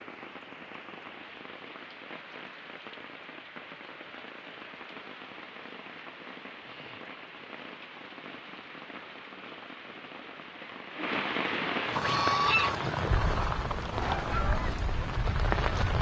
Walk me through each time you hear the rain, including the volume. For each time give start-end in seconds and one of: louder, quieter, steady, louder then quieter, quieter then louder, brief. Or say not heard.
0.0-15.9 louder.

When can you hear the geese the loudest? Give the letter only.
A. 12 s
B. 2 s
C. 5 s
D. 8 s
A.